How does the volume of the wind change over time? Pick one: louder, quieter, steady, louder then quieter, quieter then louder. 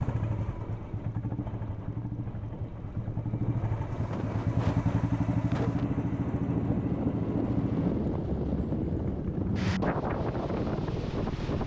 louder.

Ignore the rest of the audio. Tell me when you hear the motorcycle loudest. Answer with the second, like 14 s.
5 s.